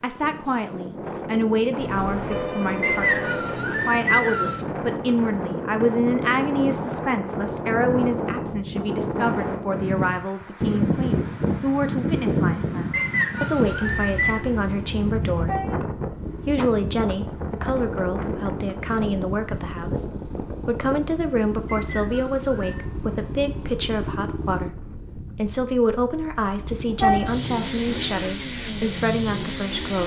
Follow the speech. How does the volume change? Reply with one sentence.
The volume of the speech stays about the same.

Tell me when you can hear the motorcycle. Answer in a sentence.
The motorcycle can be heard from 16.2 to 24.7 s and from 26.6 to 30.0 s.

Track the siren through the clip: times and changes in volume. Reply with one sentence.
The siren can't be heard in this clip.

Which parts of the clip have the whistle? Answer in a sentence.
You can hear the whistle from 2.8 to 4.6 s, from 12.9 to 14.4 s and from 21.6 to 22.9 s.